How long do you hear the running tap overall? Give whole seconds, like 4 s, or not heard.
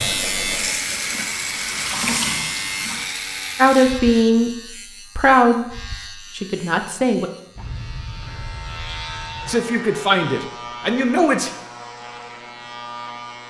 3 s.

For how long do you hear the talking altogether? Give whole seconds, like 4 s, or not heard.
5 s.